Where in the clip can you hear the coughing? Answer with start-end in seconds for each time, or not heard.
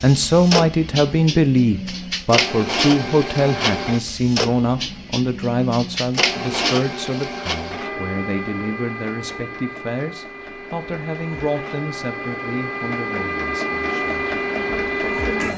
not heard.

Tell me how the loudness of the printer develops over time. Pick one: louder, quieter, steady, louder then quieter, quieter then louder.
quieter then louder.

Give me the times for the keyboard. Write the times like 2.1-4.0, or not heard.
not heard.